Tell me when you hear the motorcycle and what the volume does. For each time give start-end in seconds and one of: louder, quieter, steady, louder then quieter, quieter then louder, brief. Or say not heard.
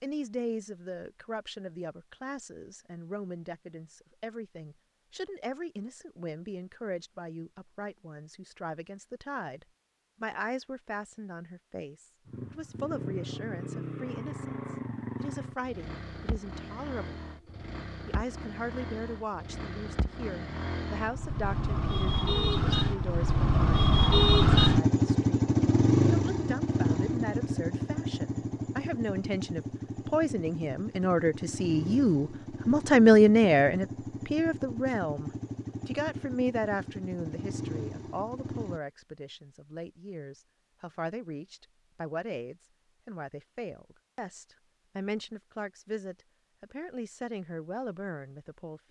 12.2-38.8 louder then quieter.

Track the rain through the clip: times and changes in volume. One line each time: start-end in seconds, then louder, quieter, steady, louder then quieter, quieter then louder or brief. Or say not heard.
not heard.